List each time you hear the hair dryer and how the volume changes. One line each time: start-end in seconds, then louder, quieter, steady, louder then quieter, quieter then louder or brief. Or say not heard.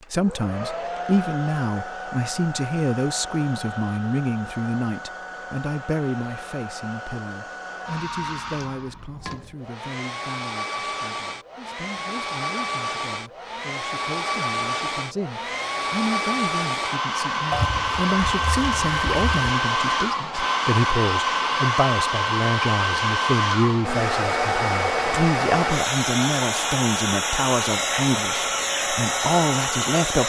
0.0-30.2 louder.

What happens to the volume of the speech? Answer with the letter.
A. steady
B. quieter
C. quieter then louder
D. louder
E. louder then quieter
C.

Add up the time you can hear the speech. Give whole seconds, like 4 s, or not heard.
30 s.